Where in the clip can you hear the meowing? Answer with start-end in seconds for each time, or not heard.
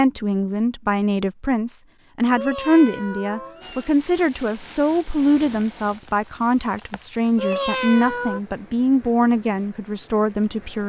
2.3-3.9, 7.3-8.4.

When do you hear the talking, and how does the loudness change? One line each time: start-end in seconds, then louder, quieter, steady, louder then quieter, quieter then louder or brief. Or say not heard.
0.0-10.8 steady.